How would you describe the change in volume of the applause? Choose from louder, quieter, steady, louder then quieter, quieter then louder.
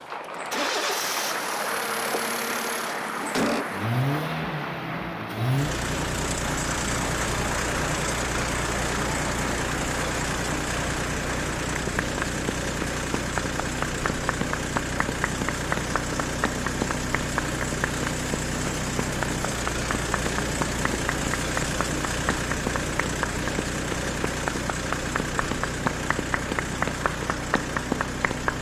steady.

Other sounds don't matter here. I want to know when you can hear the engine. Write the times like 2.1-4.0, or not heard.
0.0-28.5.